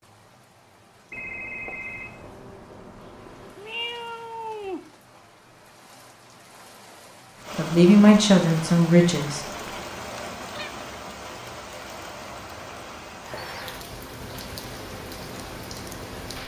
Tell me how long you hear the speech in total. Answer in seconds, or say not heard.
2 s.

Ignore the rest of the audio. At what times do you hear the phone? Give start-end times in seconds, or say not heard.
1.1-3.5.